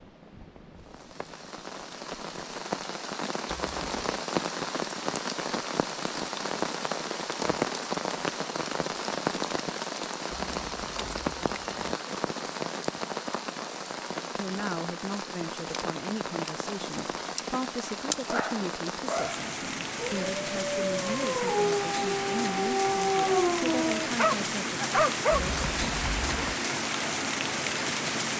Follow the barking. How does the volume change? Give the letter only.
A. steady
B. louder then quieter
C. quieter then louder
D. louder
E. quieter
D.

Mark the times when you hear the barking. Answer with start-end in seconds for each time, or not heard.
18.2-25.4.